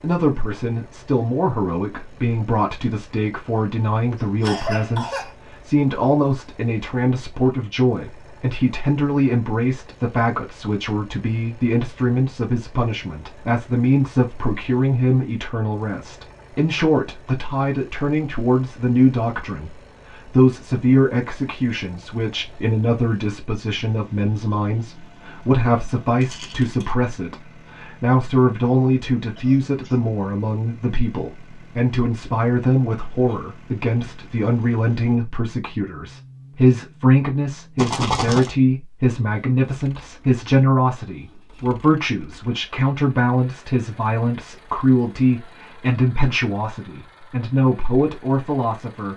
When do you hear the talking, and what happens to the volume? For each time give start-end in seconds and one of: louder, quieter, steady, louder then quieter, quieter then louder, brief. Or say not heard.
0.0-49.1 steady.